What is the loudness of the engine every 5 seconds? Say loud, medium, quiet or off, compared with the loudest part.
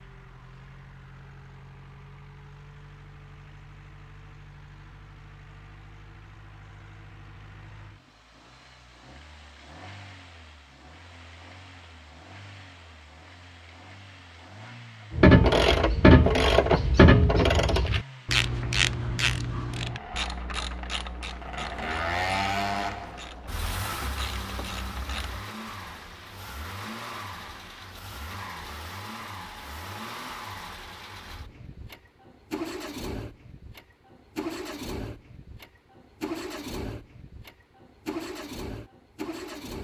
quiet, quiet, quiet, quiet, loud, medium, medium, medium.